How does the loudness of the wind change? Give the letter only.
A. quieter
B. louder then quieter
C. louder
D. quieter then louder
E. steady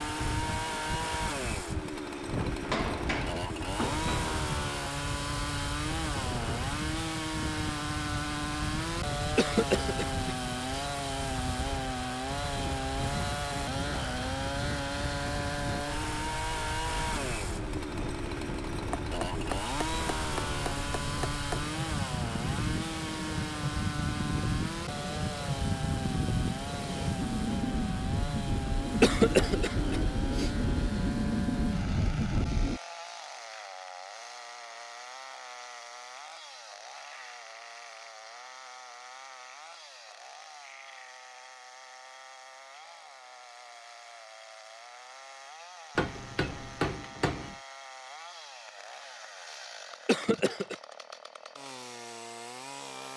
C.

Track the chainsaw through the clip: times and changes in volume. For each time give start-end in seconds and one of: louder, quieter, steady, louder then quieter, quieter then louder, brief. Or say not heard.
0.0-53.1 quieter.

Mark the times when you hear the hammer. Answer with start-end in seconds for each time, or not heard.
2.6-4.3, 18.9-21.6, 46.0-47.5.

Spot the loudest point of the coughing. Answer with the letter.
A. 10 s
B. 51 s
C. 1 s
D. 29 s
D.